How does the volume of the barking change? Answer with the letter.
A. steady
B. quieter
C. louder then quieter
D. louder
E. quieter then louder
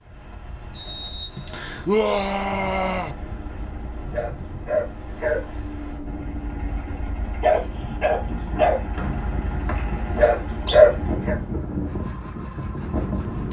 D.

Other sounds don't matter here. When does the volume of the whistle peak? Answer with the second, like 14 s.
1 s.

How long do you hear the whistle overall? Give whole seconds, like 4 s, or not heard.
3 s.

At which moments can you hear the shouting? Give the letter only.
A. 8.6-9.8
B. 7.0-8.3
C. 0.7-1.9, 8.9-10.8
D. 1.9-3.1
D.